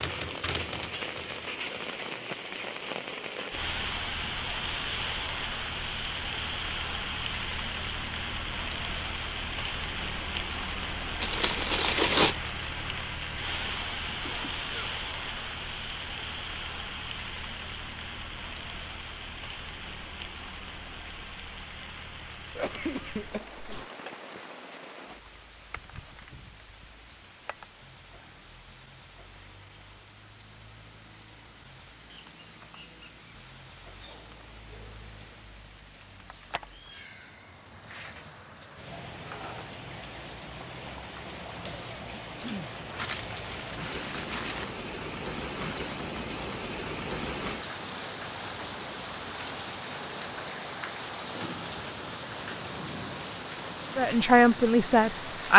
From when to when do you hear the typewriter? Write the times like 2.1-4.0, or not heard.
0.0-1.6.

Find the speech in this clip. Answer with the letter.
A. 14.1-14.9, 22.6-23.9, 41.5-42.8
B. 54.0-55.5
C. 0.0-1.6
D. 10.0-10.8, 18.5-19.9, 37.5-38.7
B.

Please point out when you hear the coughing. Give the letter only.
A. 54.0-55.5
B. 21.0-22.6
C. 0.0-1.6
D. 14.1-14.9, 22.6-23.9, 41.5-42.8
D.